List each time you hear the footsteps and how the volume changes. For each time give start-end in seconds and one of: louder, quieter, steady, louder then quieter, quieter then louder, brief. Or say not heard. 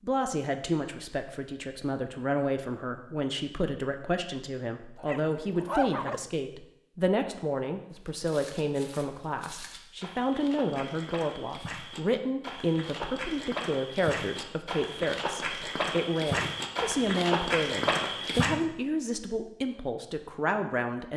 7.9-18.5 louder.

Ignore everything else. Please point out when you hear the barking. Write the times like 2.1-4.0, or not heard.
5.0-6.2.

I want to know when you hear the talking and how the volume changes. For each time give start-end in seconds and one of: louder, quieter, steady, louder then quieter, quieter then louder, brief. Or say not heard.
0.0-21.1 steady.